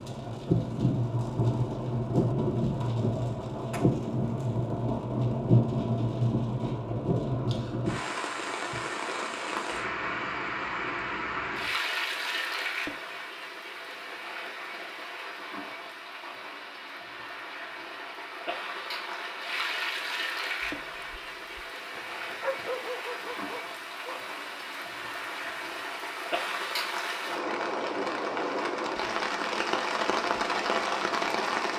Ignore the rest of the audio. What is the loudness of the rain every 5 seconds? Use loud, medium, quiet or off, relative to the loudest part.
loud, loud, medium, medium, medium, loud, loud.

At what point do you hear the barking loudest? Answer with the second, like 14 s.
23 s.